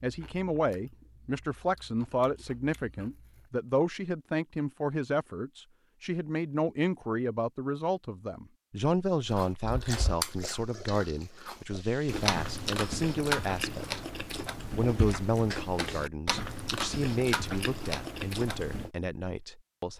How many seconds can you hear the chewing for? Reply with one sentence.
You can hear the chewing for 13 seconds altogether.